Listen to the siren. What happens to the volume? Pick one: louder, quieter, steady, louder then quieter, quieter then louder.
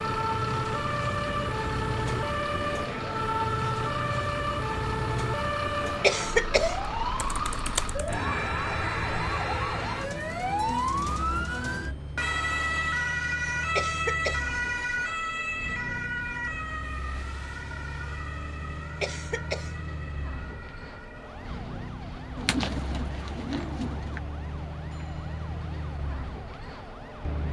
quieter.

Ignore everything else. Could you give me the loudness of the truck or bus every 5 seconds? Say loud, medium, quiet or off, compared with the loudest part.
loud, loud, medium, medium, medium, loud.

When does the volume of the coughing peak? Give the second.
6 s.